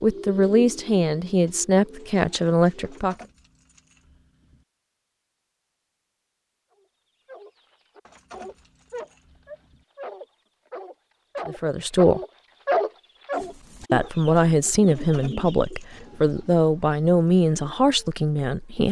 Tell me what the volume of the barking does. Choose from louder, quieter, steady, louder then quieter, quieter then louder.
louder.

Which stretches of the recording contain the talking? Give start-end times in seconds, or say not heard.
0.0-3.1, 11.4-12.2, 13.9-18.8.